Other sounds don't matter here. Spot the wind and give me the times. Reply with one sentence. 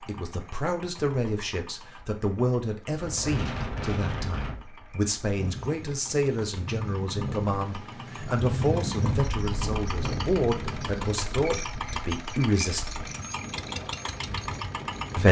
You can hear the wind from 3.0 to 15.2 s.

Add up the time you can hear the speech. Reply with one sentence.
You can hear the speech for 13 seconds altogether.